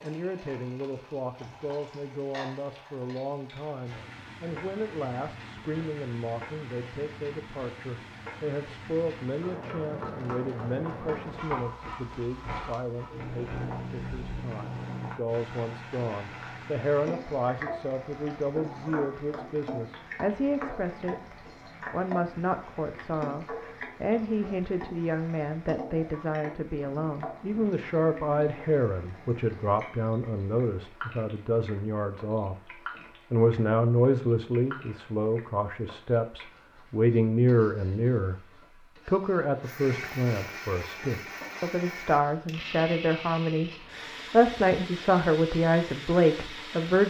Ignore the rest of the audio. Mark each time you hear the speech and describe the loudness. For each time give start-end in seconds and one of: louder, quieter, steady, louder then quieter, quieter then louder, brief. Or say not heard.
0.0-47.0 louder.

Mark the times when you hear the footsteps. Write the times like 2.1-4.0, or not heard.
not heard.